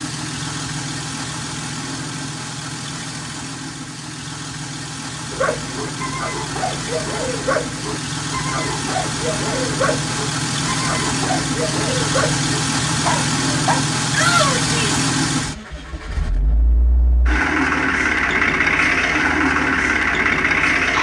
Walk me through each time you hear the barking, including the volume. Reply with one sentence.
The barking can be heard from 5.3 to 13.8 s, at a steady volume.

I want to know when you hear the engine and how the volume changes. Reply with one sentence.
You can hear the engine from 0.0 to 20.9 s, getting louder.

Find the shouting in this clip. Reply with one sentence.
The shouting can be heard from 14.1 to 15.1 s.